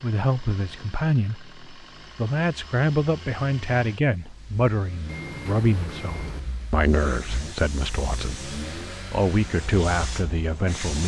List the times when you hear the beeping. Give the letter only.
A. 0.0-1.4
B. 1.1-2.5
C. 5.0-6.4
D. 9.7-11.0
C.